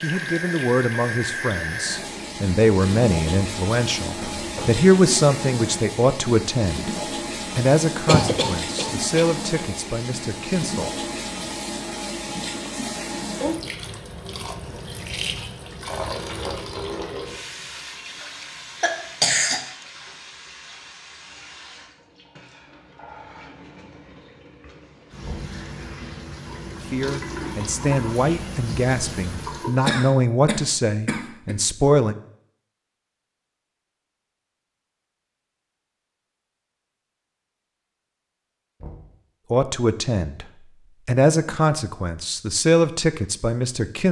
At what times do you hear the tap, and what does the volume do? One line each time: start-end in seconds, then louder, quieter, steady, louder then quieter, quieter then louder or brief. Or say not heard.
0.0-29.9 quieter then louder.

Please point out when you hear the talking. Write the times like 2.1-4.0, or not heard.
0.0-7.0, 7.5-10.9, 26.9-32.1, 39.5-40.5, 41.0-44.0.